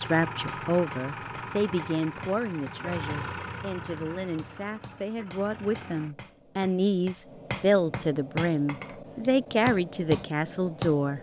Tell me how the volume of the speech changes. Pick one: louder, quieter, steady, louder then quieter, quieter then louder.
quieter then louder.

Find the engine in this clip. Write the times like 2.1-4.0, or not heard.
0.0-6.2.